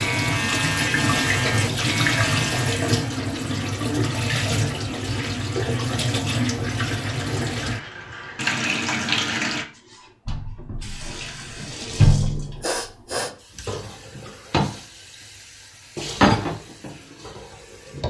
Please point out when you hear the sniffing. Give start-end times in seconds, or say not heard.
12.2-13.3.